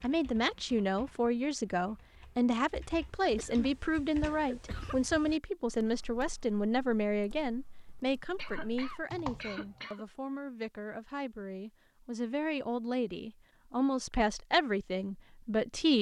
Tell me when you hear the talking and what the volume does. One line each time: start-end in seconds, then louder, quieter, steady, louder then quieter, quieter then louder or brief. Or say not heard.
0.0-15.9 quieter then louder.